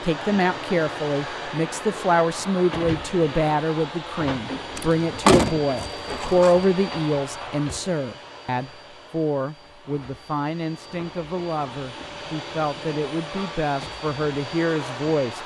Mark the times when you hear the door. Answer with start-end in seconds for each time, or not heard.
4.8-6.5.